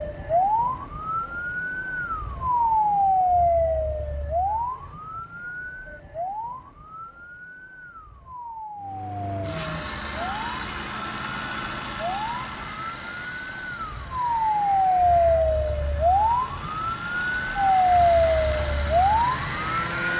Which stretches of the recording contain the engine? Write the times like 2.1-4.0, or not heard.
8.8-20.1.